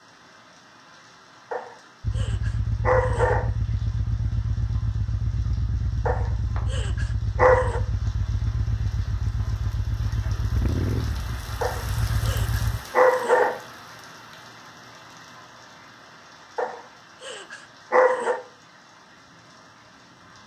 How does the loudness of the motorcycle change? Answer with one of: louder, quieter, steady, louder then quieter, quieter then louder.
steady.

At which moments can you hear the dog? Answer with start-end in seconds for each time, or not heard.
1.5-3.5, 6.0-7.8, 11.6-13.6, 16.6-18.4.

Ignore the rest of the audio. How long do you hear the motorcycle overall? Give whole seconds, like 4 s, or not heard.
11 s.